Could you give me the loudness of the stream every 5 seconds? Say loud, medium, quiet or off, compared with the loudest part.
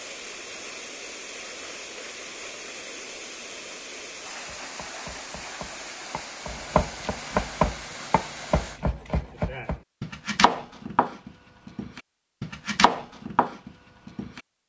loud, loud, off.